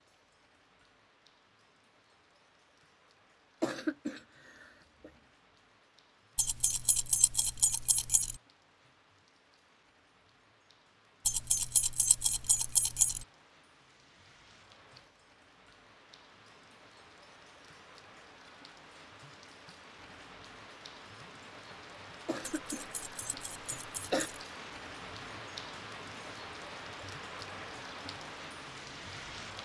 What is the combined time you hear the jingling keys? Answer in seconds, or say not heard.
6 s.